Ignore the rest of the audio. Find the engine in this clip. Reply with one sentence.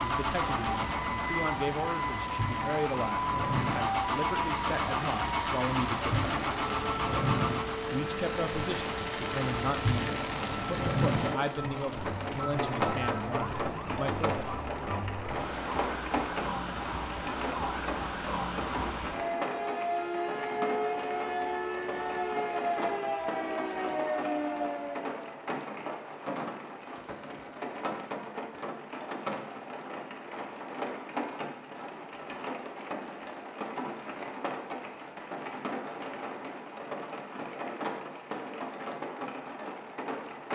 You can hear the engine from 0.0 to 8.0 s.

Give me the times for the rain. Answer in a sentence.
The rain can be heard from 0.0 to 40.4 s.